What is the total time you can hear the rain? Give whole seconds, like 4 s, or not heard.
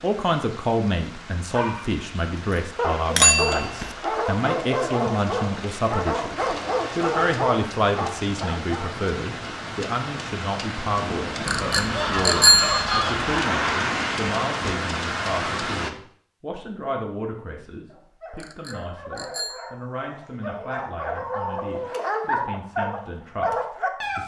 16 s.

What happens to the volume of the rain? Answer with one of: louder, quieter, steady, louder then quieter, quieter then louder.
louder.